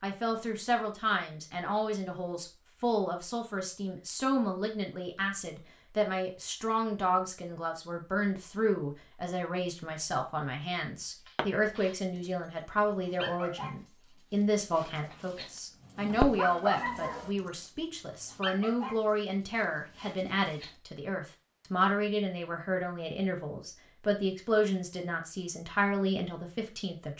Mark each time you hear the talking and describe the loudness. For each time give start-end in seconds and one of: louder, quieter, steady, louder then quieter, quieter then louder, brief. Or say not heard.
0.0-27.1 steady.